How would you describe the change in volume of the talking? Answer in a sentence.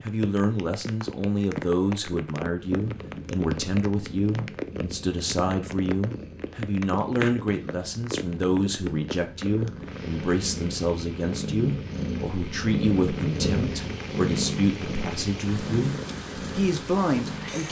The loudness of the talking stays about the same.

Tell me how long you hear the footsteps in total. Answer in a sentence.
You can't hear the footsteps here.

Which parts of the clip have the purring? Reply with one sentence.
You can hear the purring from 2.5 to 17.6 s.